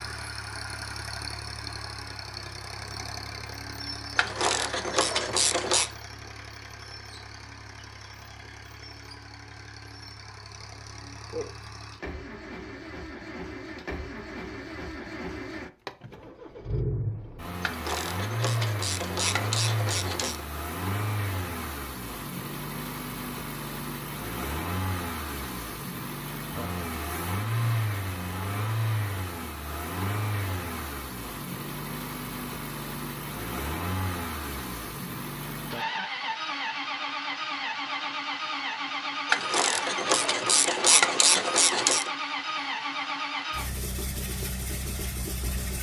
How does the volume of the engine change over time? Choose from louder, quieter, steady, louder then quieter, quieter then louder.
louder.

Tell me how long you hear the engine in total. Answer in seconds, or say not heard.
46 s.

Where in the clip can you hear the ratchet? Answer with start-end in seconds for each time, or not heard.
4.2-5.9, 17.6-20.4, 39.3-42.1.